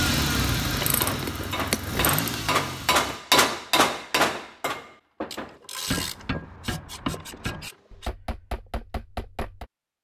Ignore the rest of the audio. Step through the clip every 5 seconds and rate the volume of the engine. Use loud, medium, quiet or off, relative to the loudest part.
loud, off.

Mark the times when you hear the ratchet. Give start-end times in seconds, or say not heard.
0.7-2.2, 5.3-8.1.